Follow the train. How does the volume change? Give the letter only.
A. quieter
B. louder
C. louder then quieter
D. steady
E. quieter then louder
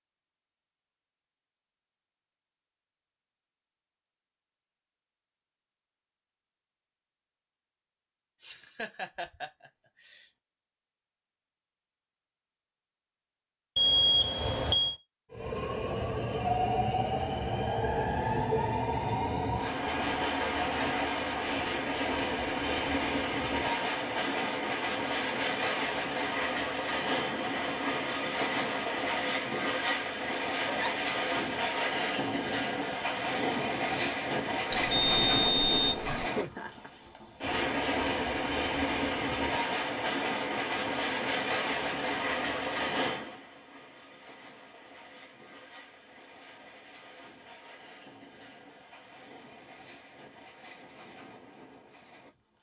A.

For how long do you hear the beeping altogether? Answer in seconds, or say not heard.
3 s.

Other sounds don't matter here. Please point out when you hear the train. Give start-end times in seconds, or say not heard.
15.3-52.5.